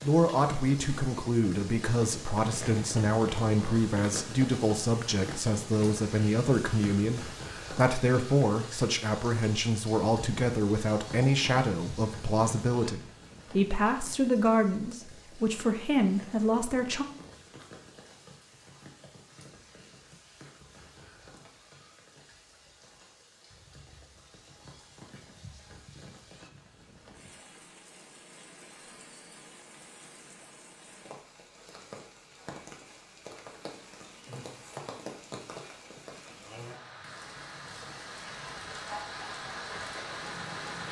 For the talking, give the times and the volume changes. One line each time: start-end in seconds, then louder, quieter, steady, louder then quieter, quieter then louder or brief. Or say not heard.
0.0-17.1 steady.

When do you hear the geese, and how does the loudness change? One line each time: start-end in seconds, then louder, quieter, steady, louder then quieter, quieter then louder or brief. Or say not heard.
not heard.